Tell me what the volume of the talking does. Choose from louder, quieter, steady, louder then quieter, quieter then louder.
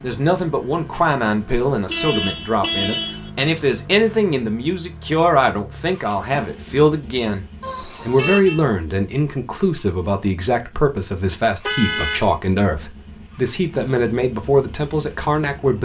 steady.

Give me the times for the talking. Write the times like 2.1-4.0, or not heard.
0.0-15.8.